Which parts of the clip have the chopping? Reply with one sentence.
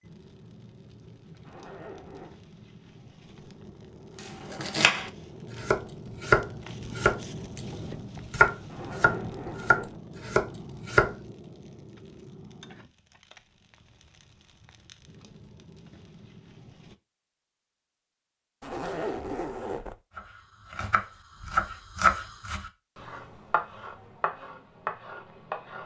The chopping can be heard from 4.2 to 11.2 s and from 20.1 to 25.8 s.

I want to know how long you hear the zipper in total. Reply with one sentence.
The zipper can be heard for 4 seconds in total.